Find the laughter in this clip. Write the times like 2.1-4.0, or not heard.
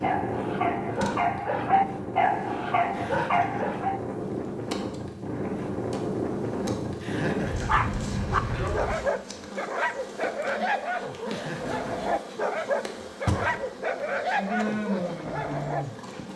3.0-3.6, 7.0-7.8, 11.2-12.0.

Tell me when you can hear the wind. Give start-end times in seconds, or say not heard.
0.0-9.0.